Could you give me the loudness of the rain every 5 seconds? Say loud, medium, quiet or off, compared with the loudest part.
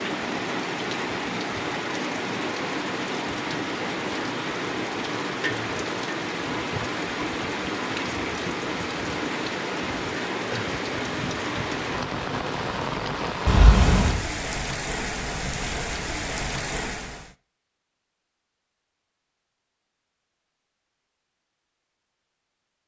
loud, loud, loud, loud, off.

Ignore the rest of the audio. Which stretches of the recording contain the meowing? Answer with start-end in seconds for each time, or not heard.
13.4-14.2.